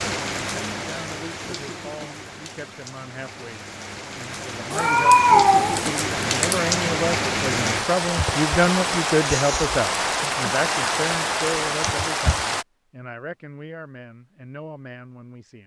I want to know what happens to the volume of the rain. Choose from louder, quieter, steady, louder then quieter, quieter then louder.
louder.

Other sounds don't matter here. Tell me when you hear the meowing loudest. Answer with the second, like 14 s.
5 s.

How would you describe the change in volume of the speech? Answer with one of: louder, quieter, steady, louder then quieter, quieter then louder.
louder then quieter.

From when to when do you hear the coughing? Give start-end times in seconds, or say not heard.
not heard.